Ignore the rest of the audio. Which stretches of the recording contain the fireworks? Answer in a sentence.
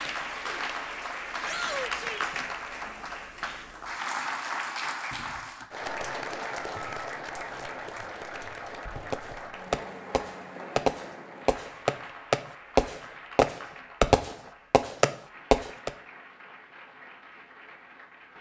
The fireworks can be heard from 9.1 to 15.9 s.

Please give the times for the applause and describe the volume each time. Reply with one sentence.
You can hear the applause from 0.0 to 18.3 s, getting quieter.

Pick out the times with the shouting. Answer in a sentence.
You can hear the shouting from 1.4 to 2.4 s.